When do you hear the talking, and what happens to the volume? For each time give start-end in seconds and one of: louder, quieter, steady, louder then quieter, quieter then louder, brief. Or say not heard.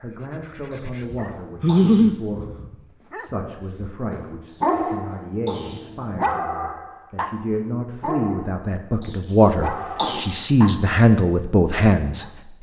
0.0-12.5 louder.